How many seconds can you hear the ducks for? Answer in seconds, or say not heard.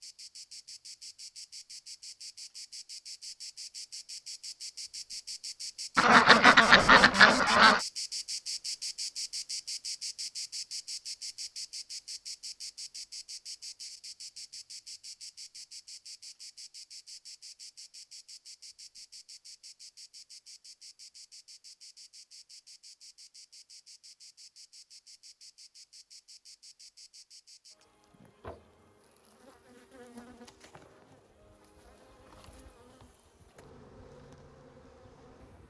2 s.